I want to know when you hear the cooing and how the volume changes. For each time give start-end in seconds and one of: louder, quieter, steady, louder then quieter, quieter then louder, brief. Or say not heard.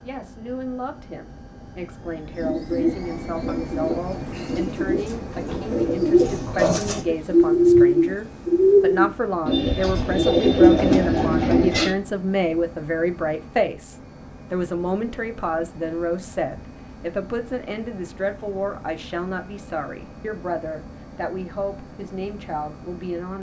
2.3-11.9 louder.